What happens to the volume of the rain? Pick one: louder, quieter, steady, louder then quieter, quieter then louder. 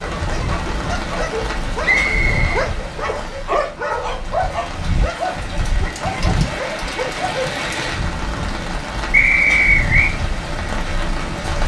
quieter then louder.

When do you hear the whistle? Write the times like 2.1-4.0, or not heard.
1.8-3.4, 9.1-10.2.